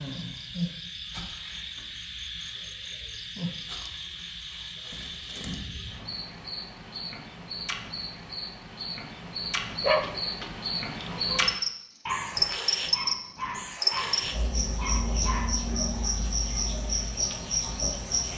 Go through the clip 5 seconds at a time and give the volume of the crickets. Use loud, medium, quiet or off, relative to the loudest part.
medium, medium, loud, loud.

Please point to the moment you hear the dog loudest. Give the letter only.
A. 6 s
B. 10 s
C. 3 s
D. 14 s
B.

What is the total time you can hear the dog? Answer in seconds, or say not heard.
6 s.